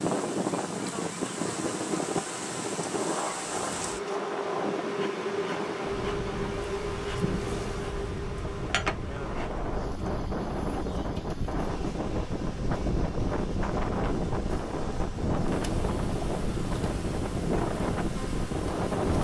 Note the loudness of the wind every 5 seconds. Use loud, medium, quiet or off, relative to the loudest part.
loud, medium, loud, loud.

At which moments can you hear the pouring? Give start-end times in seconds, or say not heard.
not heard.